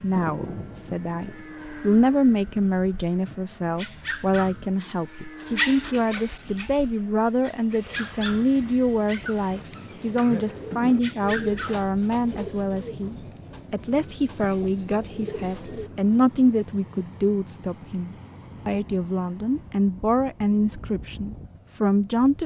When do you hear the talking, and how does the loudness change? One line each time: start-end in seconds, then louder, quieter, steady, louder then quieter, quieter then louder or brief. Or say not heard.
0.0-22.4 steady.